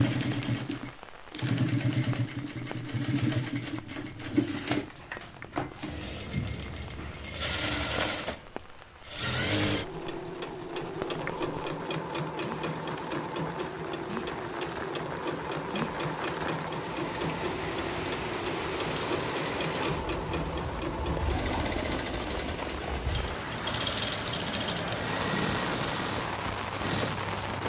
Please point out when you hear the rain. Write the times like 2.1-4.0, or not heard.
0.0-27.6.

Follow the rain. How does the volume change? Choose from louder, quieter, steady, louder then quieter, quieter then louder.
louder.